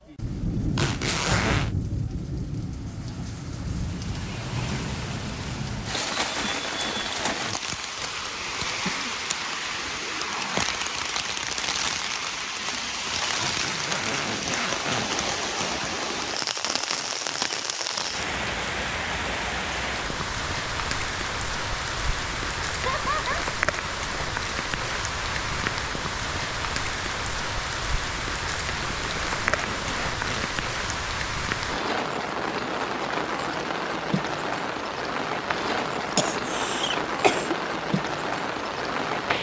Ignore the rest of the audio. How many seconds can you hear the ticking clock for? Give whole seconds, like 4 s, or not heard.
not heard.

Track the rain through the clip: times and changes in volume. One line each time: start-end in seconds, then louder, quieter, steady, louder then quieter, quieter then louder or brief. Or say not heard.
0.1-39.3 steady.